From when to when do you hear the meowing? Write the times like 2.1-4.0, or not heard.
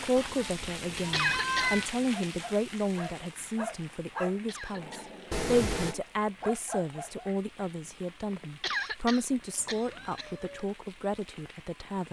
0.1-1.9, 5.3-6.0, 9.6-10.7.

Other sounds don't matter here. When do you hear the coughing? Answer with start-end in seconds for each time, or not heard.
1.1-1.8, 4.5-5.1, 8.6-10.3.